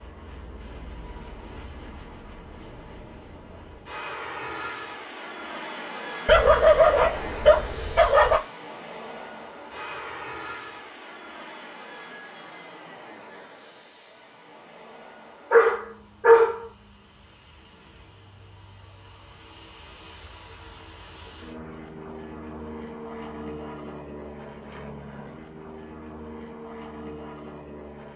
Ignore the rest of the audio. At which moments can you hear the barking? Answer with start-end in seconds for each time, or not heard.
6.2-8.4, 15.5-16.6.